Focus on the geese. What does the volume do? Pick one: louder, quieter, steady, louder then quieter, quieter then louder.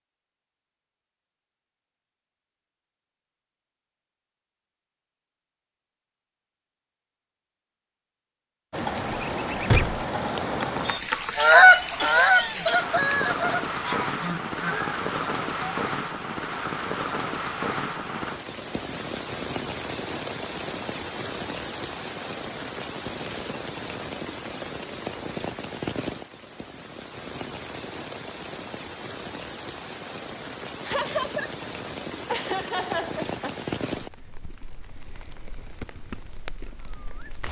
louder then quieter.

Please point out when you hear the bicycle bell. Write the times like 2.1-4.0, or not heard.
not heard.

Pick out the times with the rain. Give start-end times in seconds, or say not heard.
8.7-37.4.